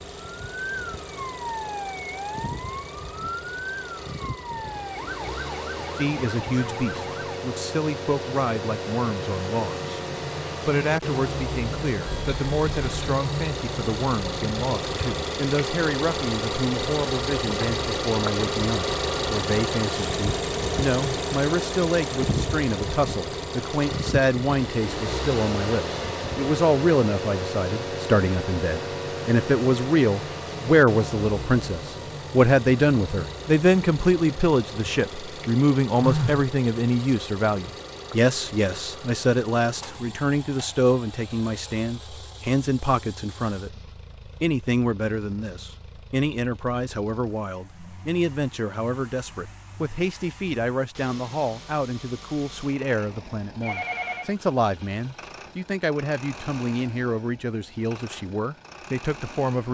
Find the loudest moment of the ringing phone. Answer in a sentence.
The loudest moment of the ringing phone is at 36 seconds.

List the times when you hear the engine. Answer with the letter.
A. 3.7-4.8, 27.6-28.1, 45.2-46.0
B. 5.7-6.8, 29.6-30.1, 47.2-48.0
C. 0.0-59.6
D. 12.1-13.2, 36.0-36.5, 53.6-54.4
C.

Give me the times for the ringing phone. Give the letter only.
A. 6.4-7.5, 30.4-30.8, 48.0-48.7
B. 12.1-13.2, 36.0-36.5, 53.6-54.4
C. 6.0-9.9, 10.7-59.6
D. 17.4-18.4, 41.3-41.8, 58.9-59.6
B.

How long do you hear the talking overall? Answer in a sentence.
You can hear the talking for 53 seconds altogether.